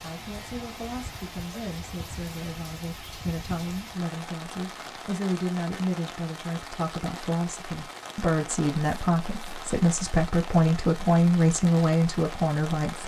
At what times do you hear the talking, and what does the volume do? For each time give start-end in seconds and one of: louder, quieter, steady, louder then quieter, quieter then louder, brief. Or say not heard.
0.0-13.0 louder.